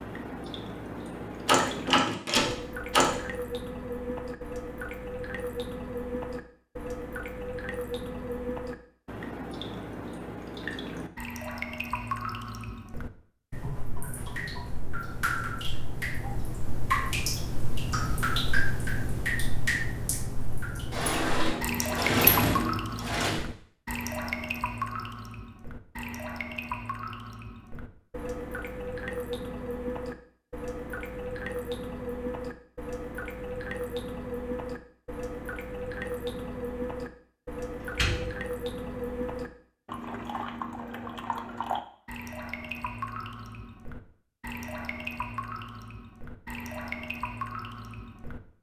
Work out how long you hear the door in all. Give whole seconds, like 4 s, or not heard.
5 s.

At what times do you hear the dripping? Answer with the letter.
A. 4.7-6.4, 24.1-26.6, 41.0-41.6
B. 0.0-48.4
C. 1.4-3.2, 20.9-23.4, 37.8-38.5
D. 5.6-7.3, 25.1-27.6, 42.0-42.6
B.